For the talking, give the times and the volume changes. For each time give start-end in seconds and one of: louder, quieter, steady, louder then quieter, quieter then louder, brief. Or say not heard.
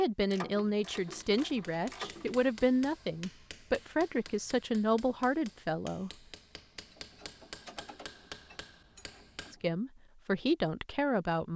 0.0-6.1 steady
9.5-11.5 brief.